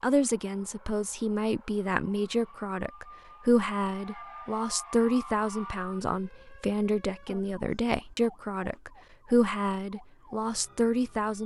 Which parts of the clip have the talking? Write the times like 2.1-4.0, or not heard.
0.0-11.4.